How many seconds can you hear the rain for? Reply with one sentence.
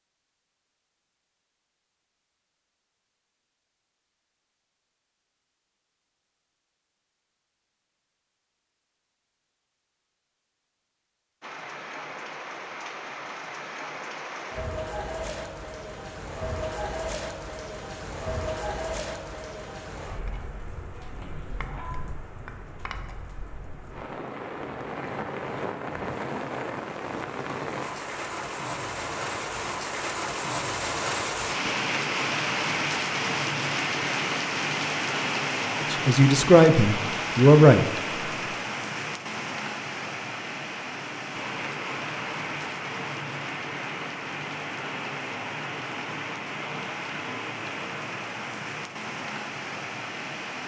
The rain can be heard for 39 seconds in total.